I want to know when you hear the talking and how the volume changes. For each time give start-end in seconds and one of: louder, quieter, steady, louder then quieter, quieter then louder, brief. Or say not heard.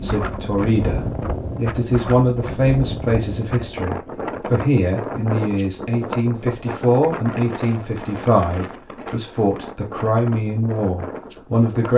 0.0-11.9 steady.